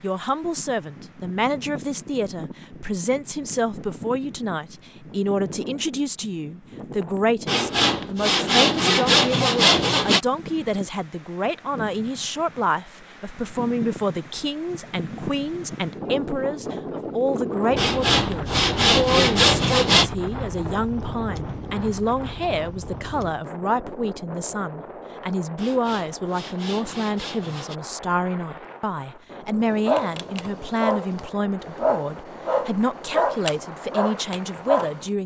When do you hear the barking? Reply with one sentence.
The barking can be heard from 29.9 to 35.0 s.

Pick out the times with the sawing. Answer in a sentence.
The sawing can be heard from 7.5 to 10.2 s, from 17.8 to 20.1 s and from 25.6 to 27.8 s.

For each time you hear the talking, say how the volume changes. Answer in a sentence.
The talking can be heard from 0.0 to 35.2 s, at a steady volume.